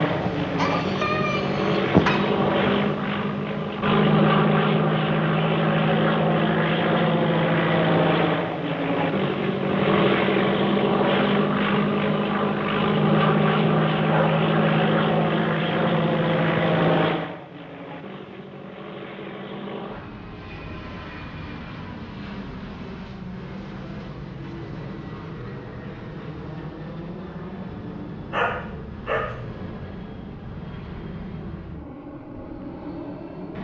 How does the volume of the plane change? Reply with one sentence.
The loudness of the plane goes down.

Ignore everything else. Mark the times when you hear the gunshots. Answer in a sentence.
You can't hear the gunshots here.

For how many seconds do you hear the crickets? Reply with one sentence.
The crickets can't be heard in this clip.